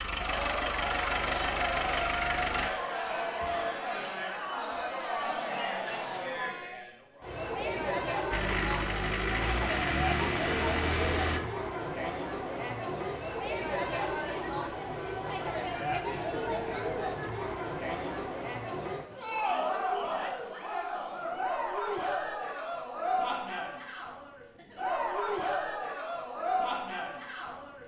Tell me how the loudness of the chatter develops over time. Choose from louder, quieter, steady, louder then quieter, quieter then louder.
steady.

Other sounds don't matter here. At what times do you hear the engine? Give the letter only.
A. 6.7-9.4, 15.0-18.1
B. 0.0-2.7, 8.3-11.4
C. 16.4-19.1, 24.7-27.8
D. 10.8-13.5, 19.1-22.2
B.